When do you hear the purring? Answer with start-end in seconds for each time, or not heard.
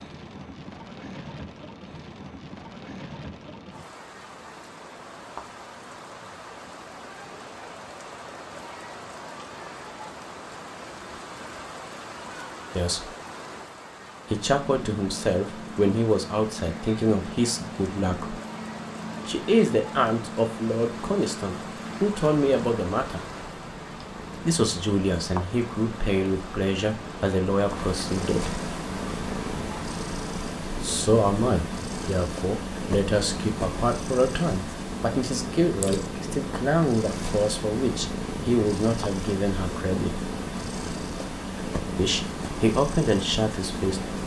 14.2-44.2.